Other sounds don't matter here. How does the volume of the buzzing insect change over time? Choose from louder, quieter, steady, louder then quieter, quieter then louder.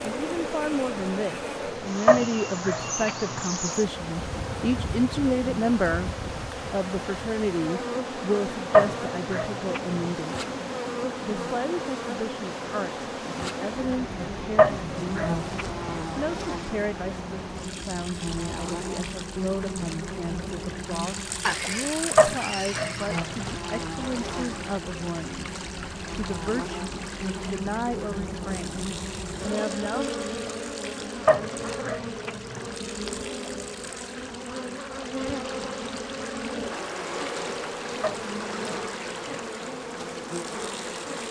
steady.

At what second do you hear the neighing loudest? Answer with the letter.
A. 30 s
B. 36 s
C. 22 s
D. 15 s
C.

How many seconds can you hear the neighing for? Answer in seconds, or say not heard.
2 s.